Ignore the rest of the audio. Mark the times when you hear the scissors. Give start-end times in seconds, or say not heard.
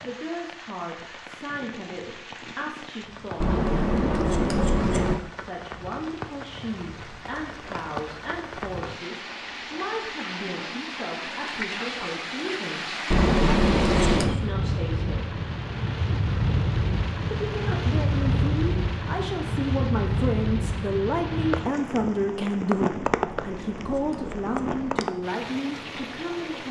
3.4-5.2, 13.1-14.4, 23.2-25.1.